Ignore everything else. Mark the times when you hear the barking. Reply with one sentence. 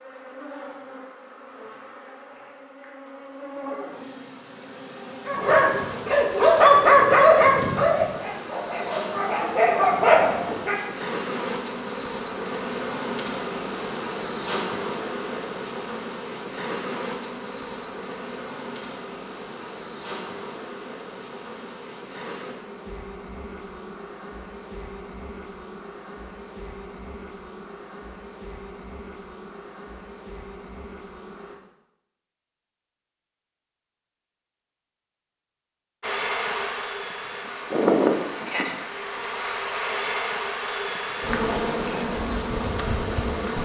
The barking can be heard from 5.2 to 10.8 s.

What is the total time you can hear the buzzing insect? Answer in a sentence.
The buzzing insect can be heard for 39 seconds in total.